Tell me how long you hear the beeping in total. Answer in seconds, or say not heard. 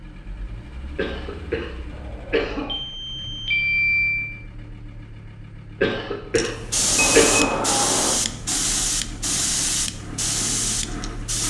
3 s.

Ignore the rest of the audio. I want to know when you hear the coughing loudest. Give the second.
7 s.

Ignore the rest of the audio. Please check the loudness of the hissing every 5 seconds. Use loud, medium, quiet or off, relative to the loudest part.
off, loud, loud.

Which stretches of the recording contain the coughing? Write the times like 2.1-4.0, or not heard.
0.9-2.8, 5.8-7.5.